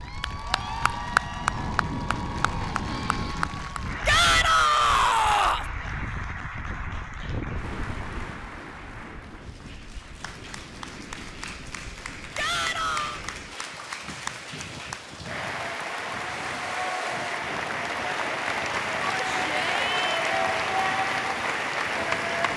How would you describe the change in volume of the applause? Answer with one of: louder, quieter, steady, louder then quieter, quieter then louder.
quieter then louder.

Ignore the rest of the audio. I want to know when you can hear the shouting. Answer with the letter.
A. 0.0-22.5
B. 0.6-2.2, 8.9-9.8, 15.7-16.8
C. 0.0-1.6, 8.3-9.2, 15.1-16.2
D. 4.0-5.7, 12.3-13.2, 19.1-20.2
D.